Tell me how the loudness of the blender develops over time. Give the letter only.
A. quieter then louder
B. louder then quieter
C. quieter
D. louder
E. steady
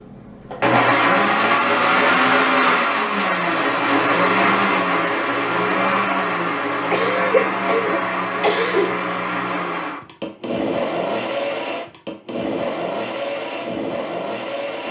C.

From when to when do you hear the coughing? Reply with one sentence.
The coughing can be heard from 6.9 to 8.9 s.